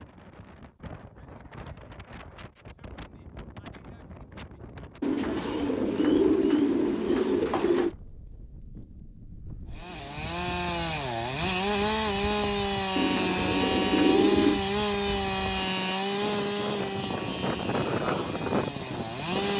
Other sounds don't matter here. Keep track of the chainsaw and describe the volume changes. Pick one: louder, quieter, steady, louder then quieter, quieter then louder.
quieter.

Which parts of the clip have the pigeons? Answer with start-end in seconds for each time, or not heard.
5.0-8.0, 12.9-14.6.